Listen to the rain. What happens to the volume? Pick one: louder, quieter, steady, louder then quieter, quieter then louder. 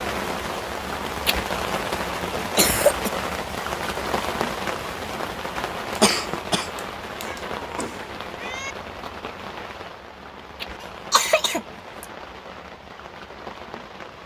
quieter.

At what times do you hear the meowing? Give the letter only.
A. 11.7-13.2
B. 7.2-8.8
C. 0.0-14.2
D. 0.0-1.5
B.